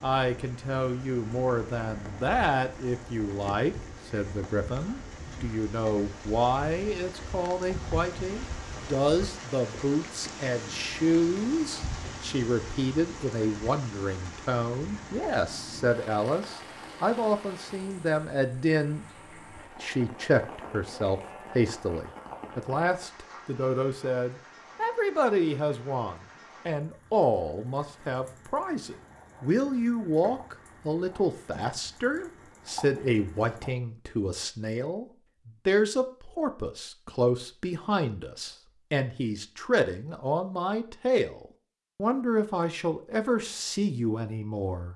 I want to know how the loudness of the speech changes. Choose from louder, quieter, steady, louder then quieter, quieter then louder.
steady.